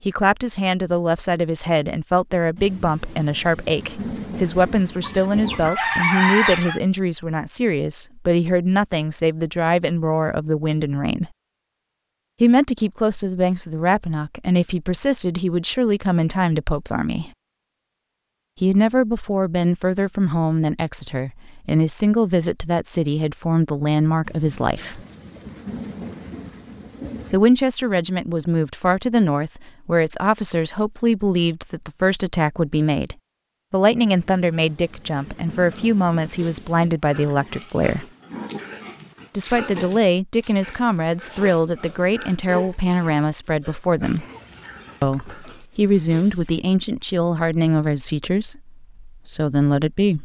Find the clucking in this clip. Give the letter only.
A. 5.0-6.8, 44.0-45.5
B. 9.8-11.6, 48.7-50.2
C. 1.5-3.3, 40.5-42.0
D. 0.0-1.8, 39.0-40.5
A.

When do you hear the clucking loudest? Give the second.
6 s.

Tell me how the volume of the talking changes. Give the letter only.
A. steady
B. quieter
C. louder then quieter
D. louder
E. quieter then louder
A.